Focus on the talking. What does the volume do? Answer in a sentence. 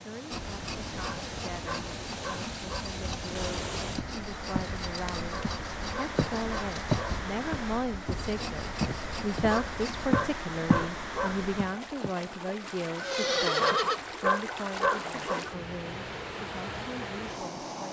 The loudness of the talking goes up, then down.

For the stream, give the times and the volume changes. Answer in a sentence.
The stream can be heard from 0.0 to 17.8 s, at a steady volume.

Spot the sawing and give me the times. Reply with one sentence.
The sawing can be heard from 0.3 to 10.1 s.